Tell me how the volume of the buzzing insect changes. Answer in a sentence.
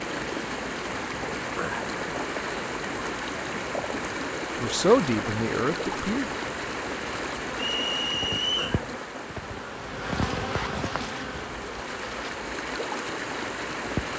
The loudness of the buzzing insect goes up, then down.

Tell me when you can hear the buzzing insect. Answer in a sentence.
You can hear the buzzing insect from 0.0 to 14.1 s.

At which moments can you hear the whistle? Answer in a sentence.
The whistle can be heard from 7.5 to 8.8 s.